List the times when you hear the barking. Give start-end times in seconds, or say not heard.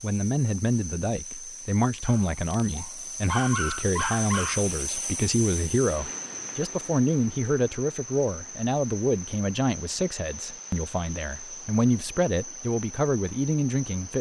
2.0-4.7.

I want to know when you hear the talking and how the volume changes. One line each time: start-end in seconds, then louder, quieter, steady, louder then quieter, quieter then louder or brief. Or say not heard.
0.0-14.1 steady.